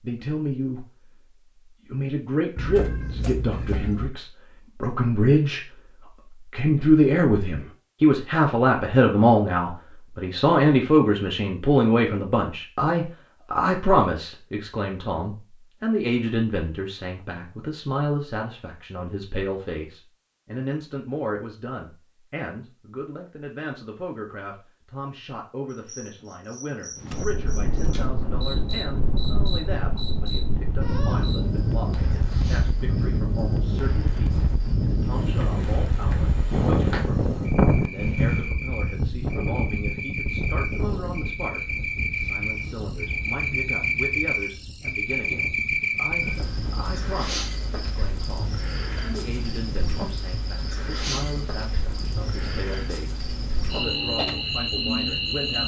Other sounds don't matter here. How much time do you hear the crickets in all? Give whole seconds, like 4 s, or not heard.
30 s.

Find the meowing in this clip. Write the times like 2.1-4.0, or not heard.
2.5-4.1, 46.1-47.1.